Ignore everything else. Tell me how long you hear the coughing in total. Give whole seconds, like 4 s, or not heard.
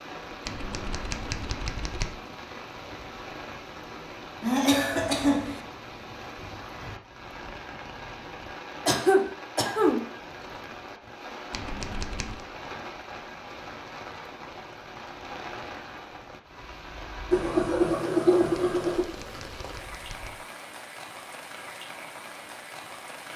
4 s.